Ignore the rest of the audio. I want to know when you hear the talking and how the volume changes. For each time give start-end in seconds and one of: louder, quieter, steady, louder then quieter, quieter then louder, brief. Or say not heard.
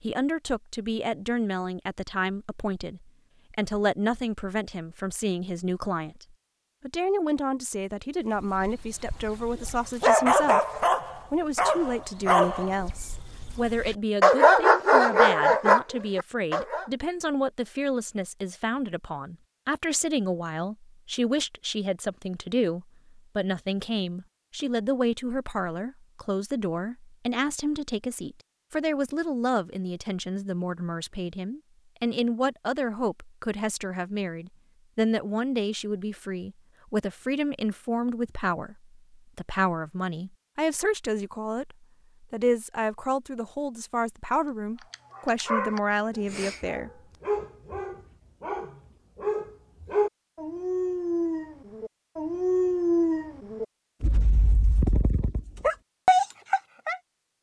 0.0-46.9 steady.